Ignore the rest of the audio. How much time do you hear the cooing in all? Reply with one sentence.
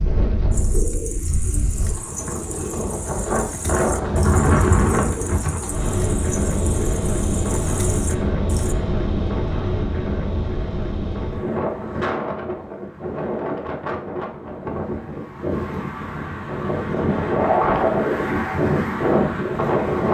You can hear the cooing for 8 seconds altogether.